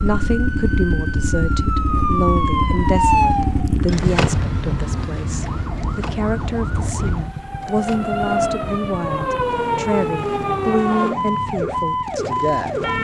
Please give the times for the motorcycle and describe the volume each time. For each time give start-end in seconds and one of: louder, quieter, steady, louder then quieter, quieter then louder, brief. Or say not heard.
0.0-12.9 quieter.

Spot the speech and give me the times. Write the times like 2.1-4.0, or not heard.
0.0-12.9.